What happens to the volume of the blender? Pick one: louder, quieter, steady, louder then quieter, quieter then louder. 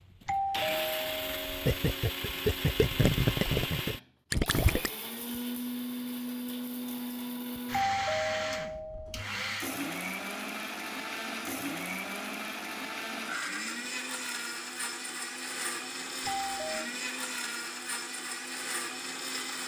steady.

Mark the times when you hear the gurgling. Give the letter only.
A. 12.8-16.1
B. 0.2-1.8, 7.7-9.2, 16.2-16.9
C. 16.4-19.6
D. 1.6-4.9
D.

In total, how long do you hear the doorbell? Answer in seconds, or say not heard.
4 s.